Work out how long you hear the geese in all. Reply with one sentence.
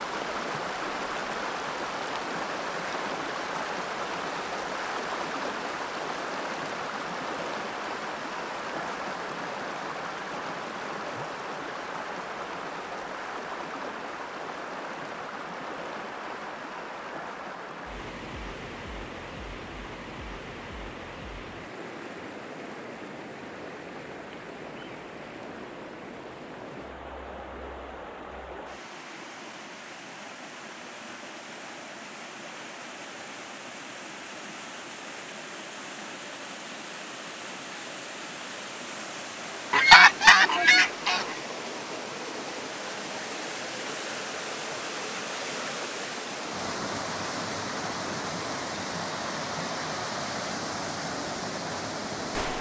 The geese can be heard for 2 seconds in total.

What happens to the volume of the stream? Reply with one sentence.
The volume of the stream goes down, then up.